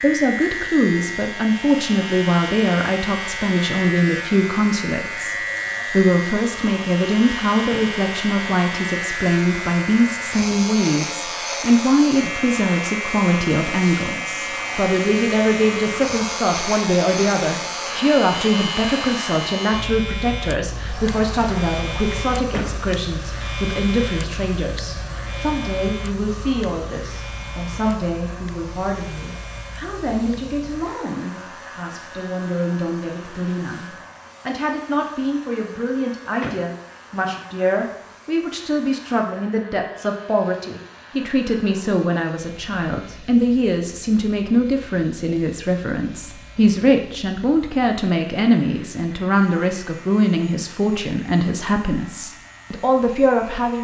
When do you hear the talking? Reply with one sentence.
The talking can be heard from 0.0 to 53.7 s.